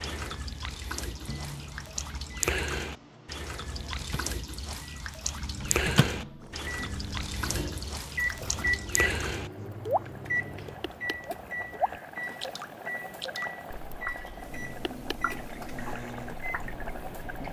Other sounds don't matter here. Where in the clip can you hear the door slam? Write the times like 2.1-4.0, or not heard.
not heard.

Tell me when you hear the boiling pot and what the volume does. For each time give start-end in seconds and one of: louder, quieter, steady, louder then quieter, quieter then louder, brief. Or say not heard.
6.4-17.4 louder.